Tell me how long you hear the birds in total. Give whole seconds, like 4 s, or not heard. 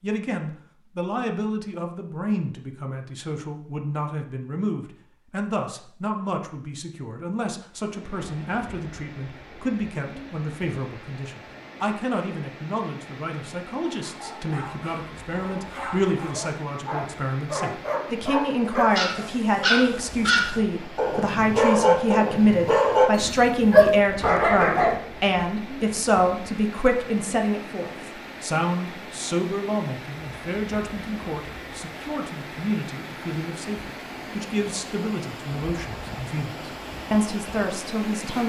not heard.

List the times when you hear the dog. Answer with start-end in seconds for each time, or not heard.
13.8-25.0.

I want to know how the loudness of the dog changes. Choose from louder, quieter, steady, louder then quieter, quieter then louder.
louder.